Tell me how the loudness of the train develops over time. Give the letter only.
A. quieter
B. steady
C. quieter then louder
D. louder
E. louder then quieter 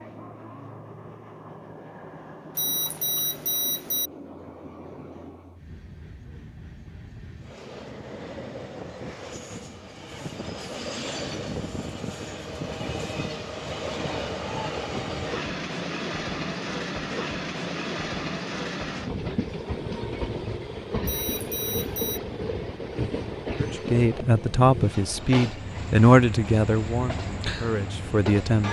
D.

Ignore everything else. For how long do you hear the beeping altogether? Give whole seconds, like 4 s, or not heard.
3 s.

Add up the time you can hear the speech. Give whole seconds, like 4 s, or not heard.
5 s.